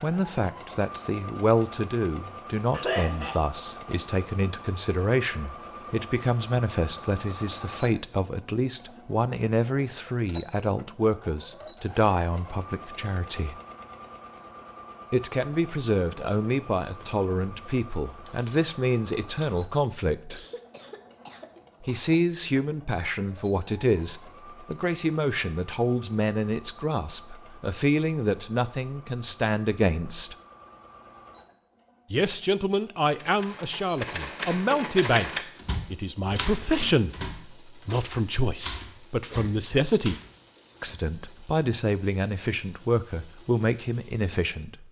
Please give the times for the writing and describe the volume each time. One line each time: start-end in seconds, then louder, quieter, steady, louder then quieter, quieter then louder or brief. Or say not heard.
not heard.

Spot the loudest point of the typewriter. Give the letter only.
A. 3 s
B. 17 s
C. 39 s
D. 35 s
D.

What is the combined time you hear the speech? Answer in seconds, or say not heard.
39 s.